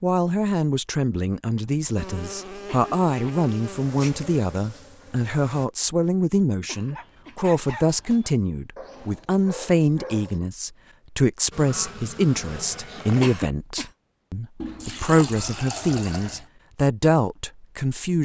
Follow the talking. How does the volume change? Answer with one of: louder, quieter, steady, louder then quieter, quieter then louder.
steady.